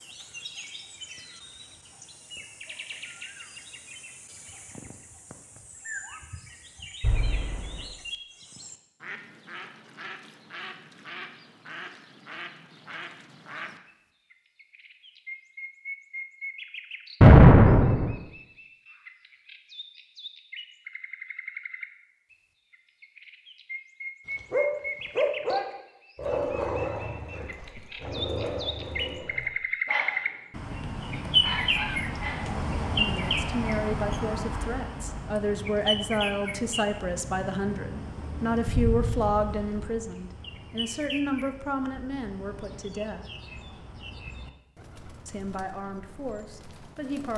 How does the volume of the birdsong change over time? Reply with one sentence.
The volume of the birdsong goes up, then down.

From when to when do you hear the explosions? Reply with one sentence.
The explosions can be heard from 7.0 to 7.8 s, from 17.2 to 18.1 s and from 38.6 to 39.6 s.